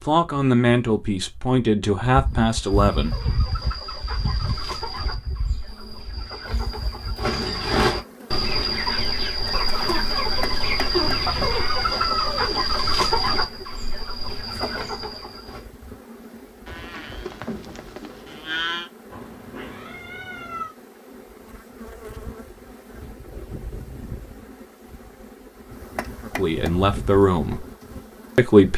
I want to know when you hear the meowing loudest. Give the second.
12 s.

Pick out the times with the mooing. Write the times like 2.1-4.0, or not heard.
16.6-18.9.